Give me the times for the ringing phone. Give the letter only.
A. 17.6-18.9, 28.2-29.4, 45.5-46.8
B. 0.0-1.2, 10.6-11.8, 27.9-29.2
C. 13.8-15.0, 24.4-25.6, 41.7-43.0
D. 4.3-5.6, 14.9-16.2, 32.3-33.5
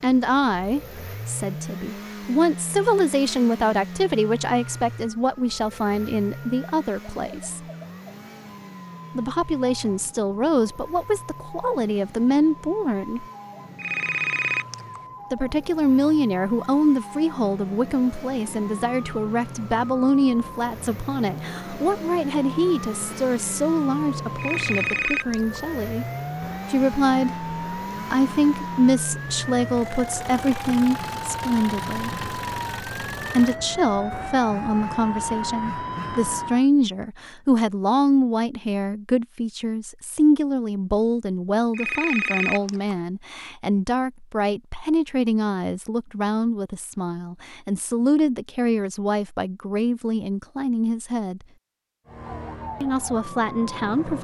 C.